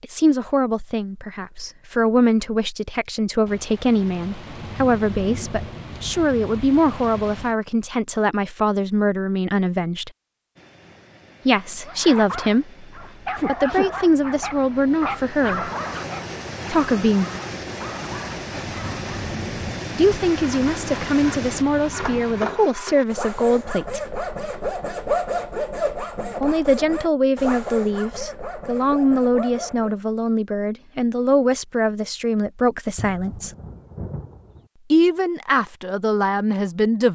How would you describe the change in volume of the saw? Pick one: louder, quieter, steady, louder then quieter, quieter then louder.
louder then quieter.